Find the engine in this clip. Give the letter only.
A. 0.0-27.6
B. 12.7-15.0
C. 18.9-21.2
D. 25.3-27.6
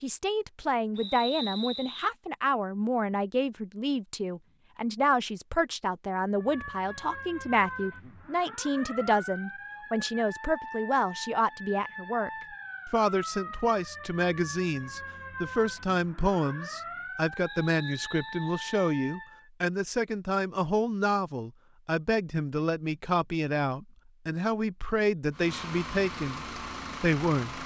D.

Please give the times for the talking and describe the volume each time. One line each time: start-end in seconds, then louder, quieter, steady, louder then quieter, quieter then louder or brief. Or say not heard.
0.0-27.6 steady.